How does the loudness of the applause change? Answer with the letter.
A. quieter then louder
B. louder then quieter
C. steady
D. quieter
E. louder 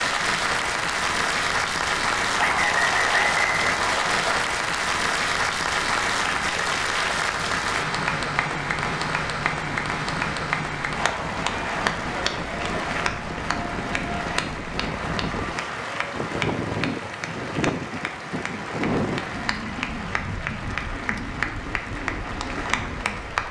D.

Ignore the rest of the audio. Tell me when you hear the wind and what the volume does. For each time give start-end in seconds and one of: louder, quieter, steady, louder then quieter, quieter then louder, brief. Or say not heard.
0.0-23.4 louder.